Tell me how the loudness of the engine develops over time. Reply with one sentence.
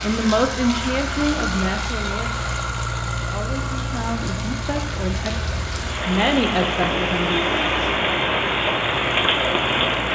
The loudness of the engine goes down.